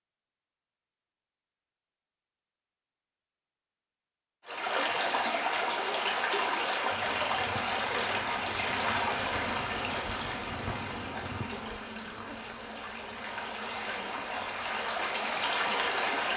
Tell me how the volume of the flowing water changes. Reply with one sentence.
The volume of the flowing water goes down, then up.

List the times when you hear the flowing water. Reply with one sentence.
You can hear the flowing water from 4.5 to 16.3 s.